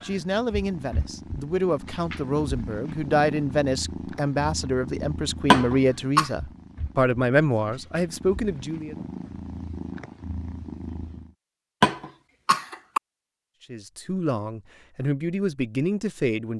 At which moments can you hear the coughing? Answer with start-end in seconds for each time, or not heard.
5.5-6.3, 11.8-13.0.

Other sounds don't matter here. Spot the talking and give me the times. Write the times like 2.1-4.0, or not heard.
0.0-8.9, 13.7-16.5.